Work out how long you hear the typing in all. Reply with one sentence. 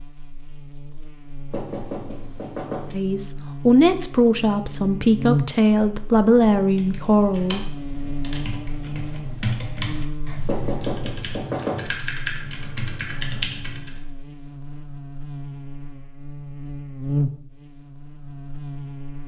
You can hear the typing for 7 seconds altogether.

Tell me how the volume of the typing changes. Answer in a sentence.
The loudness of the typing goes up.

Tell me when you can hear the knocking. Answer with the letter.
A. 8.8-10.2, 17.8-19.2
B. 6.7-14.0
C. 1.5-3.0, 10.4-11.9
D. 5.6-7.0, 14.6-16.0
C.